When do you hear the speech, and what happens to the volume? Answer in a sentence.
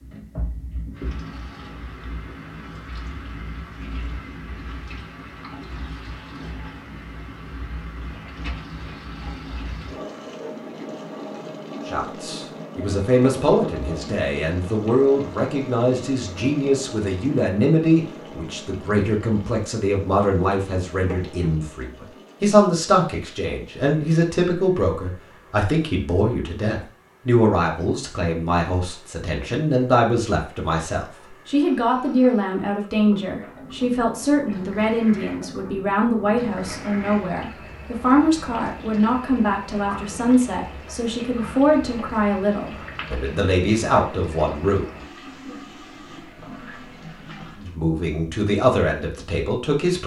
You can hear the speech from 11.8 to 44.9 s, at a steady volume; and briefly from 47.5 to 50.0 s.